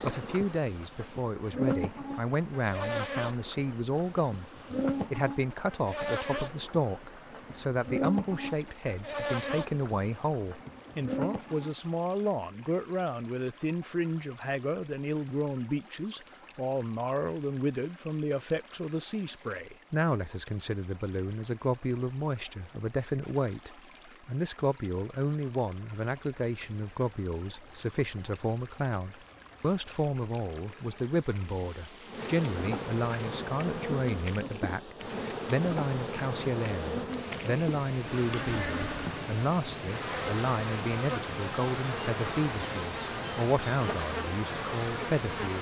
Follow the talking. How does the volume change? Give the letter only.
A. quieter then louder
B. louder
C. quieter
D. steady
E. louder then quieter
D.